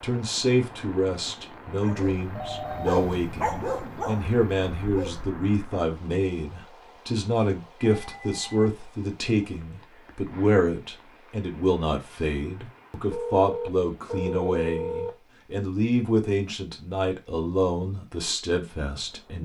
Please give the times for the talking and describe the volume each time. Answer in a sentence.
The talking can be heard from 0.0 to 19.4 s, at a steady volume.